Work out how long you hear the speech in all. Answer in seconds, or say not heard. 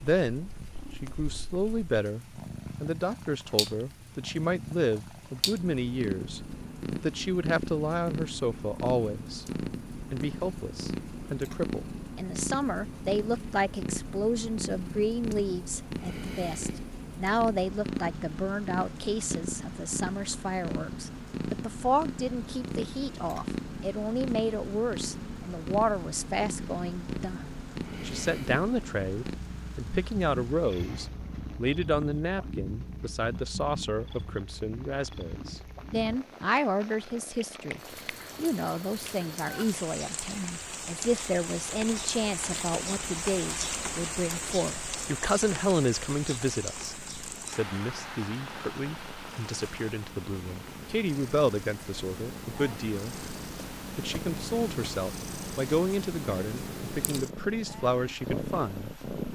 58 s.